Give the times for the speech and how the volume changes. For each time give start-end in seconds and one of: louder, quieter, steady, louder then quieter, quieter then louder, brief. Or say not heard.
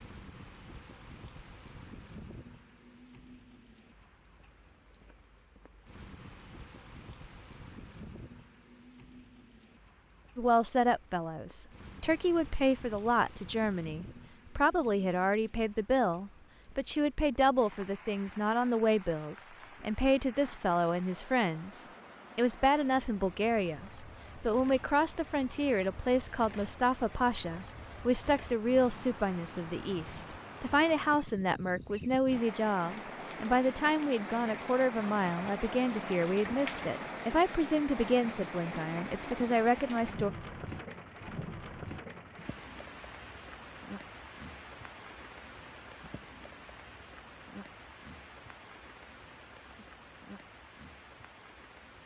10.3-40.3 steady.